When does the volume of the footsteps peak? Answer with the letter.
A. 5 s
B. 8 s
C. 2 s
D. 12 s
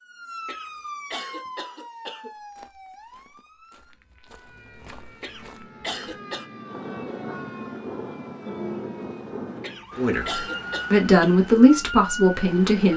A.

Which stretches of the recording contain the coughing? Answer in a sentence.
You can hear the coughing from 0.5 to 2.3 s, from 5.2 to 6.5 s and from 9.6 to 11.3 s.